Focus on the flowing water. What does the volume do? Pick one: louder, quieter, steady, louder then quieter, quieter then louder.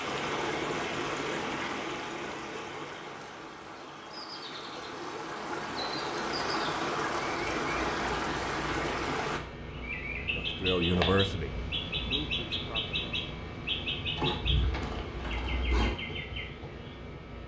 quieter then louder.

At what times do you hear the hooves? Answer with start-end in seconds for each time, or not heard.
14.2-15.9.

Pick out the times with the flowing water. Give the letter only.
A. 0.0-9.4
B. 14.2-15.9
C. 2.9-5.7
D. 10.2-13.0
A.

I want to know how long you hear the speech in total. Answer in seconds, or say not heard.
3 s.